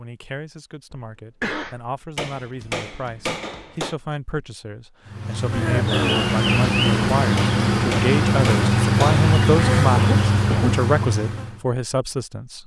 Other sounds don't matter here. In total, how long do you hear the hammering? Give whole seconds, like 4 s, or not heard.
4 s.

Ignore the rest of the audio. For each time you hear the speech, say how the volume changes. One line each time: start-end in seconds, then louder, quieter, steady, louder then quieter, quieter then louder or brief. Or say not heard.
0.0-12.6 louder.